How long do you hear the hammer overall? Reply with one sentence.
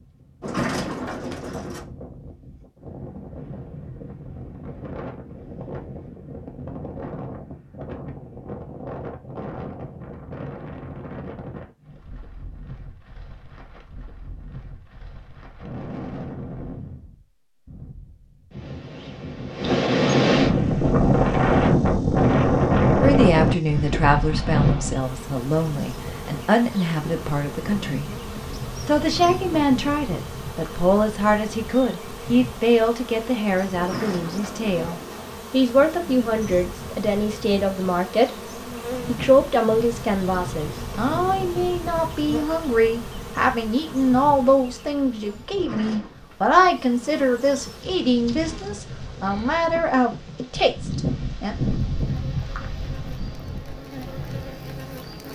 You can't hear the hammer here.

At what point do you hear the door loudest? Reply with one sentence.
The volume of the door peaks at 1 second.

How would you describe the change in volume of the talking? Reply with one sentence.
The loudness of the talking stays about the same.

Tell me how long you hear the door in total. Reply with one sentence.
You can hear the door for 4 seconds altogether.